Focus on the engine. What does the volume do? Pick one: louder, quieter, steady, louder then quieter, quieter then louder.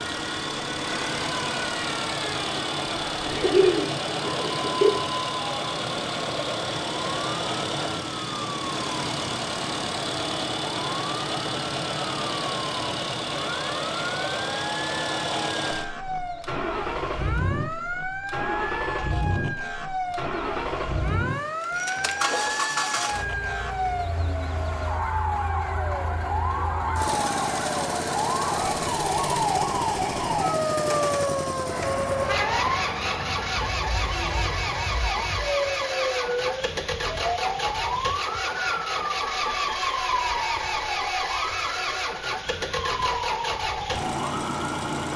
steady.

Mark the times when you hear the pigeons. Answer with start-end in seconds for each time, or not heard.
3.2-4.9.